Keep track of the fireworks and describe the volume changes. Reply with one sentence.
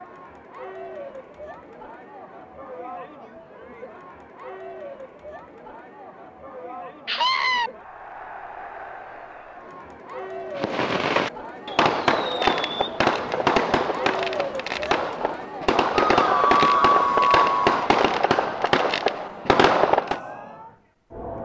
The loudness of the fireworks stays about the same.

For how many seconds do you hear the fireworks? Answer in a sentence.
The fireworks can be heard for 10 seconds in total.